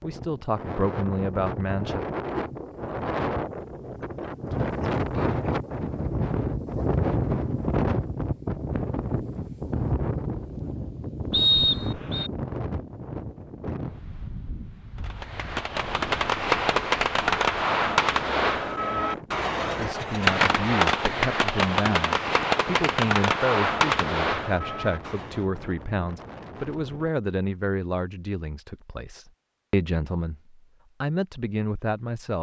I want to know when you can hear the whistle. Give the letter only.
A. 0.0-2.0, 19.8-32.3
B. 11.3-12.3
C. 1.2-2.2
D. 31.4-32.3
B.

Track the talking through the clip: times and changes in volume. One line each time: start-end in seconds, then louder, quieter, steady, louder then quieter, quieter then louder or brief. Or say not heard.
0.0-2.0 brief
19.8-32.3 steady.